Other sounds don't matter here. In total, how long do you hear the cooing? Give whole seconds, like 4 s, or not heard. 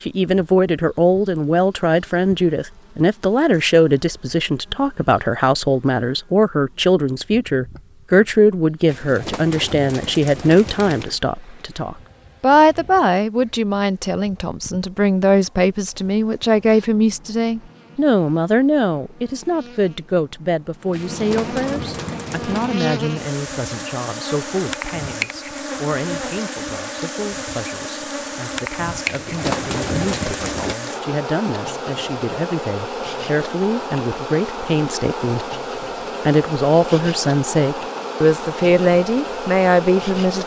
6 s.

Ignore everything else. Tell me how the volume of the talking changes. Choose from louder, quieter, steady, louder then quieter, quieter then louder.
quieter then louder.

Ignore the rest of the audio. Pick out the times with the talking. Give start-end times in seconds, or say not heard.
0.0-35.5, 36.2-40.4.